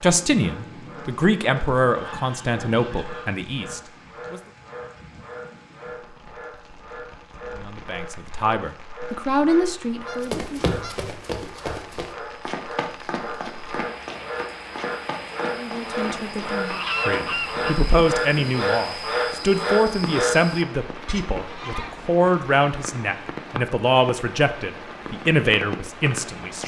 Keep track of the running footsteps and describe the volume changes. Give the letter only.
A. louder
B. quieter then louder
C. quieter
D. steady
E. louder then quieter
C.